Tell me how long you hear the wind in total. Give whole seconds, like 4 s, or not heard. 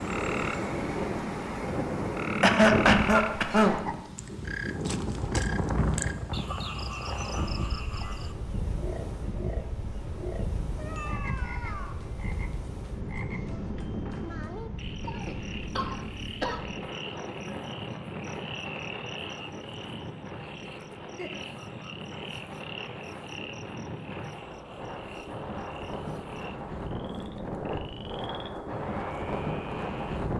30 s.